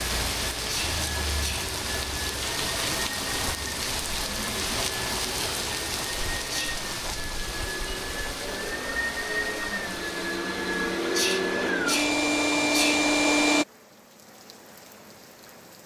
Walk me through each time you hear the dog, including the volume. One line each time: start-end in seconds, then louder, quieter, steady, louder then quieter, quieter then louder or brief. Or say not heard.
not heard.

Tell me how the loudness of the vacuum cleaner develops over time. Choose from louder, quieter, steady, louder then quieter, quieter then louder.
louder.